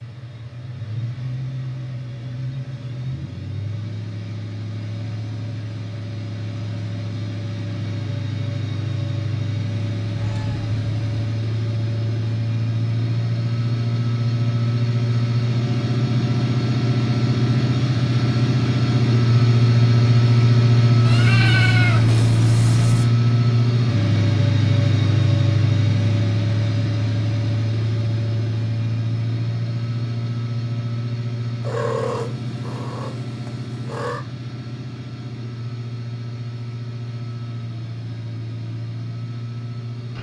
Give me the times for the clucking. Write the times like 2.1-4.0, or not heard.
not heard.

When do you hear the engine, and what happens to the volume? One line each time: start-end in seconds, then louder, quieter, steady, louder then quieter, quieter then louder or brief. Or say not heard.
0.0-40.1 louder then quieter.